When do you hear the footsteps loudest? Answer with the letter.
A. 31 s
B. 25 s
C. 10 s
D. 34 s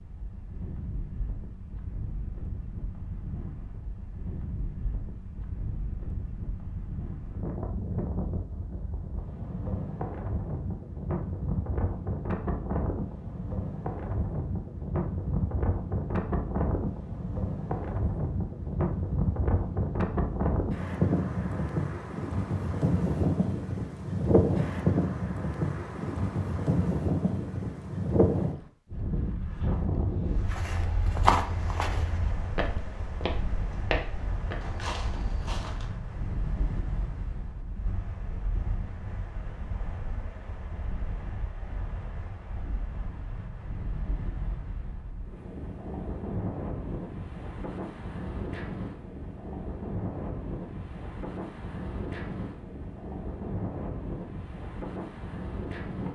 A.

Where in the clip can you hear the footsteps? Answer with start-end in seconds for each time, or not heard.
30.4-35.9.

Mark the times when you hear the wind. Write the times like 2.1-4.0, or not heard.
0.0-56.1.